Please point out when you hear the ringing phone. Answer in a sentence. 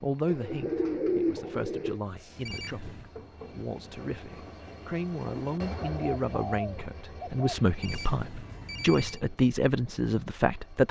The ringing phone can be heard from 2.5 to 3.1 s and from 7.8 to 9.2 s.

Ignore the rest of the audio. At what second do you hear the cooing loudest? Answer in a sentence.
The loudest moment of the cooing is at 1 second.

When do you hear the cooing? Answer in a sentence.
You can hear the cooing from 0.2 to 2.0 s and from 5.8 to 7.8 s.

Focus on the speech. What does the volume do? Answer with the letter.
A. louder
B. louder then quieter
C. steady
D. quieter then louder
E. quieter
A.